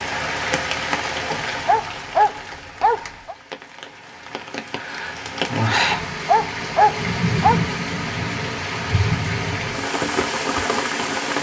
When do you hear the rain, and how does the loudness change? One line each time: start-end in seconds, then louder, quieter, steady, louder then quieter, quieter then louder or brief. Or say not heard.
0.0-11.3 quieter then louder.